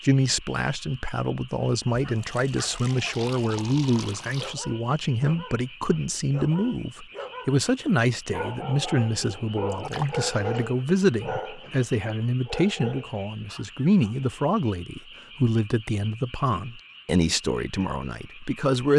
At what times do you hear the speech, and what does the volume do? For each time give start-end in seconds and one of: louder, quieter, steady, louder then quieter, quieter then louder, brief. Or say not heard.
0.0-18.9 steady.